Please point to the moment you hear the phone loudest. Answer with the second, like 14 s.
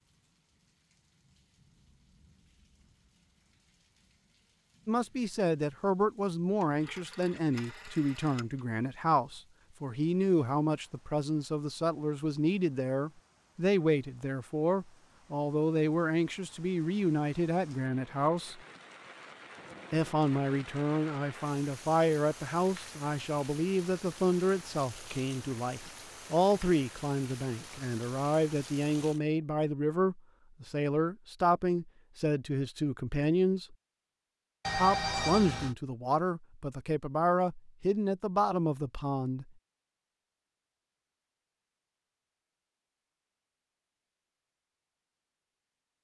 35 s.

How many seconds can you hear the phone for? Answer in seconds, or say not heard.
3 s.